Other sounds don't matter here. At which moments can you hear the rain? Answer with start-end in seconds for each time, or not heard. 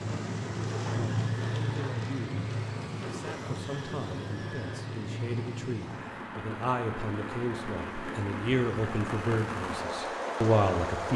0.0-11.1.